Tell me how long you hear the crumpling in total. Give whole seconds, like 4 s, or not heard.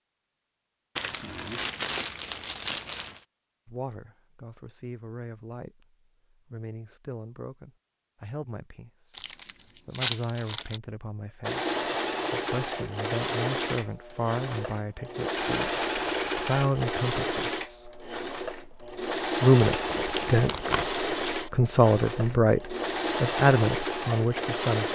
5 s.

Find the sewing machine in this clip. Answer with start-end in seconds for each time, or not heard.
11.4-24.9.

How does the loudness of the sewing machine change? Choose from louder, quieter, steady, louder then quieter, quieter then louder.
steady.